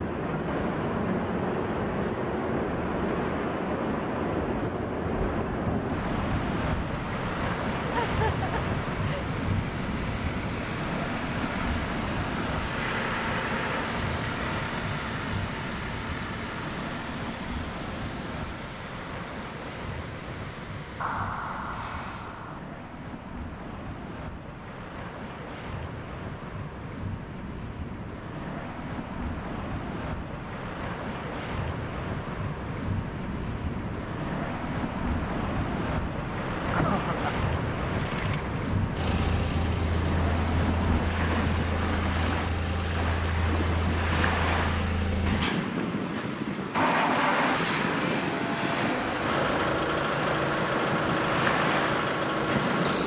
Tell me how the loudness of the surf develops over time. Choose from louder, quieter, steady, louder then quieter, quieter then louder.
quieter then louder.